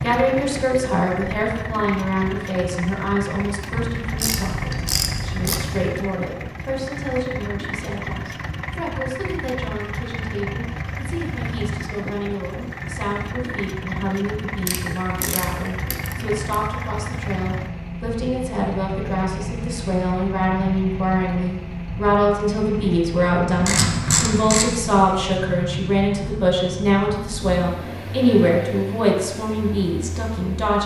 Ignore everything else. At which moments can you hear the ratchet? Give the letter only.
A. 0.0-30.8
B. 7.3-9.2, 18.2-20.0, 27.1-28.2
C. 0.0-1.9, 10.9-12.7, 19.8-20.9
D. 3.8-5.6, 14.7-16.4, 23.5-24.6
D.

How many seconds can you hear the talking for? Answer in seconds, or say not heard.
31 s.